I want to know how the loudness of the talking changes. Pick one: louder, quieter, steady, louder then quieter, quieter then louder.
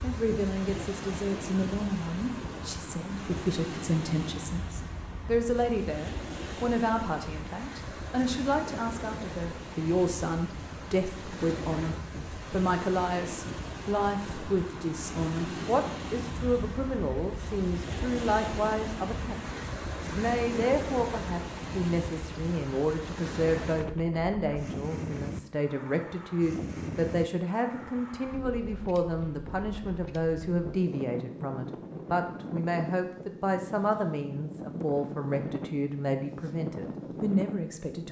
steady.